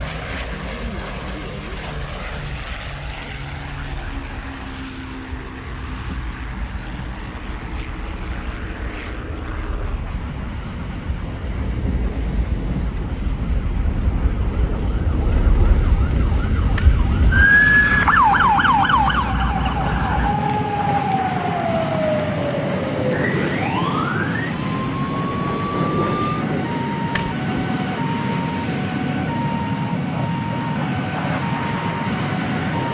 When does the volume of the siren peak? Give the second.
18 s.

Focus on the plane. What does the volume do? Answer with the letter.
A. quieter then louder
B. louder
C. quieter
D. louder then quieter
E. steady
B.